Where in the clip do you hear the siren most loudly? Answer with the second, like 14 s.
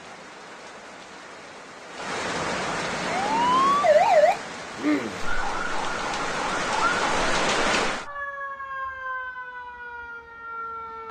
4 s.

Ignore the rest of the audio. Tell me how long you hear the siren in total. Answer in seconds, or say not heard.
8 s.